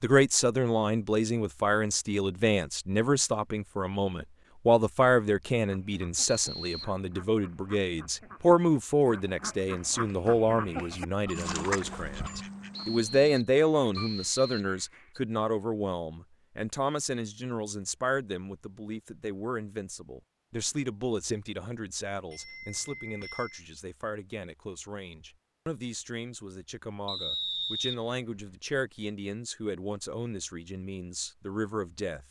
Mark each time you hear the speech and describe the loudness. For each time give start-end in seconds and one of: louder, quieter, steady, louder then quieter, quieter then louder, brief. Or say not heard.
0.0-32.2 quieter.